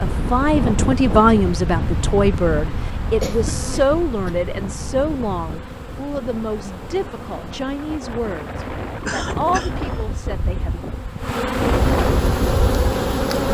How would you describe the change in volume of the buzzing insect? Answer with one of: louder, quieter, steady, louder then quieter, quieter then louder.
louder.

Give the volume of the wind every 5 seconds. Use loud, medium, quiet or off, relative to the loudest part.
loud, medium, loud.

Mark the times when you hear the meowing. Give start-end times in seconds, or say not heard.
not heard.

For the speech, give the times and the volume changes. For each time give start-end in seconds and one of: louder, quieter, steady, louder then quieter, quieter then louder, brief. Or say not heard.
0.0-10.8 quieter.